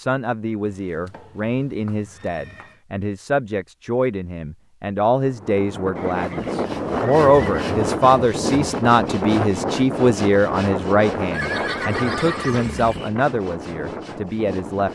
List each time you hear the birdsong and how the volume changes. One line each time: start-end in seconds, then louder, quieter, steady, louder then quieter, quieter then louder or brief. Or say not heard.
not heard.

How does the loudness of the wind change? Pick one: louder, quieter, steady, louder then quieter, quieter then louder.
quieter.